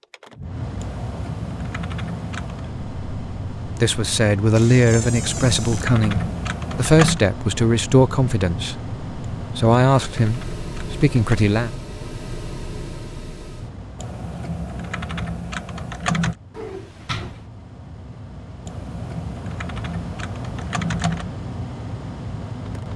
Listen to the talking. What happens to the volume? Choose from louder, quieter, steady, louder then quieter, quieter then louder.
steady.